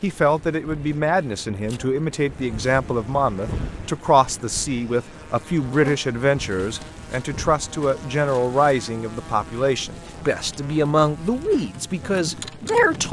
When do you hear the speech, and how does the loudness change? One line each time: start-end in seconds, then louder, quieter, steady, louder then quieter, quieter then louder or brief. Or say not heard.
0.0-13.0 steady.